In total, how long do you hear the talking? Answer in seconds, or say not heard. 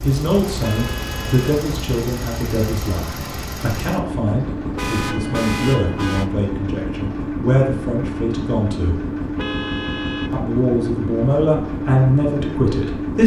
12 s.